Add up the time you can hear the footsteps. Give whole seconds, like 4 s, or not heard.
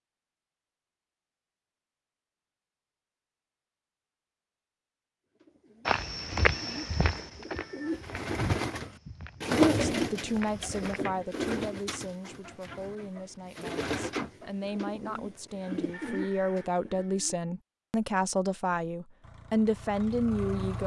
5 s.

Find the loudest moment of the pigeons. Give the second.
10 s.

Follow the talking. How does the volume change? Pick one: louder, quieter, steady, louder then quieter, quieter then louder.
quieter then louder.